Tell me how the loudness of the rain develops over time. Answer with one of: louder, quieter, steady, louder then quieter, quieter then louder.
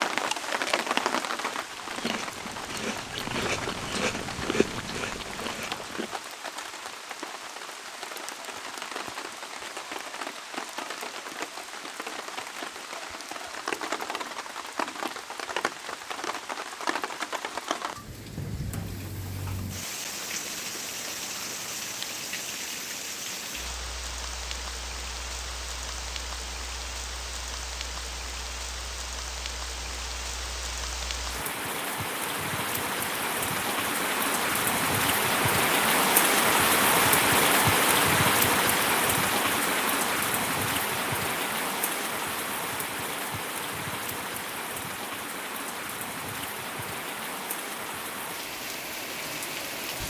louder then quieter.